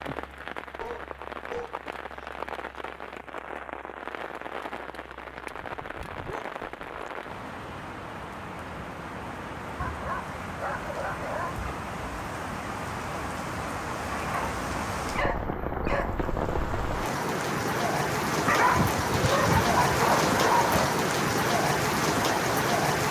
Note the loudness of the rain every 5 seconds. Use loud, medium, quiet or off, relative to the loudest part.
quiet, quiet, medium, loud, loud.